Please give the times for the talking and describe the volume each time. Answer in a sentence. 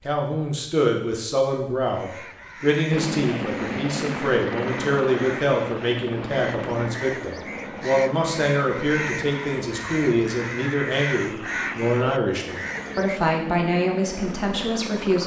The talking can be heard from 0.1 to 15.2 s, at a steady volume.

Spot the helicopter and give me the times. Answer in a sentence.
The helicopter can be heard from 2.9 to 15.2 s.